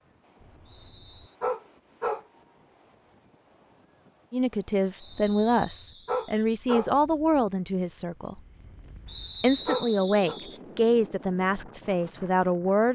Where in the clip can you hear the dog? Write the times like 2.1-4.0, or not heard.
0.4-2.2, 5.3-6.9, 8.7-10.4.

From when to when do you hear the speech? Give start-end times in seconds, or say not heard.
4.3-8.4, 9.4-12.8.